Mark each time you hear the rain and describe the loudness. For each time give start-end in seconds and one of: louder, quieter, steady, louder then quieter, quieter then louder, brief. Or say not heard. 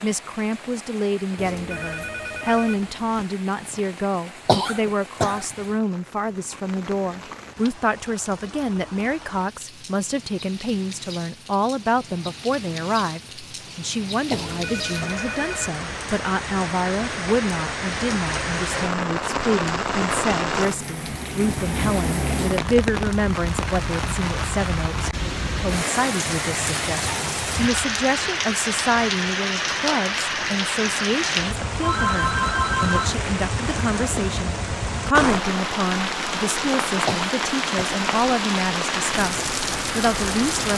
0.0-40.7 louder.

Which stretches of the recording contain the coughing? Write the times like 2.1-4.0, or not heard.
4.5-5.5, 14.3-15.2, 37.0-38.0.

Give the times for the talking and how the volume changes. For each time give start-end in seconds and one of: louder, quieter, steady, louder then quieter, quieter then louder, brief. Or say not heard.
0.0-40.7 steady.